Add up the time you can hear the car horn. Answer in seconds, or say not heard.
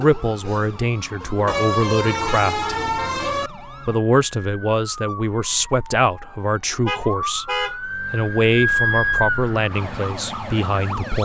3 s.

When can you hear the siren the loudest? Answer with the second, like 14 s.
9 s.